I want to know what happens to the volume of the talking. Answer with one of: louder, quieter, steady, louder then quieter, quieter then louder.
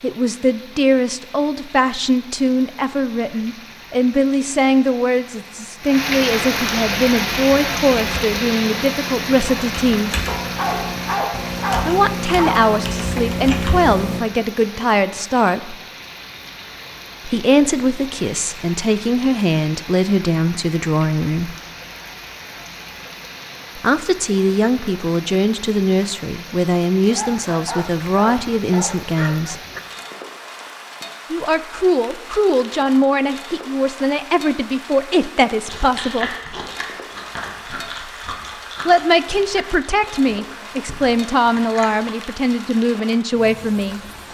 steady.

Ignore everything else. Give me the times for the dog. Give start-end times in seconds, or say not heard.
10.2-12.8, 27.1-29.8.